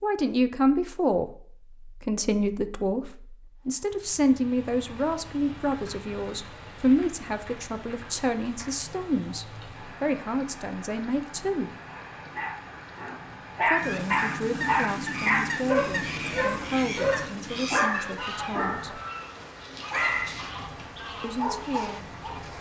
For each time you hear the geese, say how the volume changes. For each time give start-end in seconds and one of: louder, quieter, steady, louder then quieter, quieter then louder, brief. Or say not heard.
13.8-22.5 quieter.